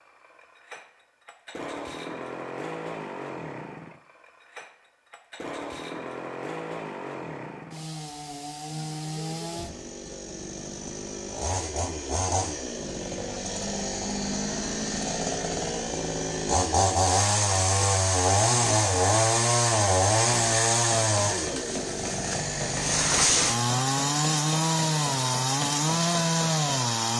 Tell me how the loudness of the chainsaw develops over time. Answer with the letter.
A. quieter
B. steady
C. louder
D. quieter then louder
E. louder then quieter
C.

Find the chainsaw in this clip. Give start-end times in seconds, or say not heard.
0.0-27.1.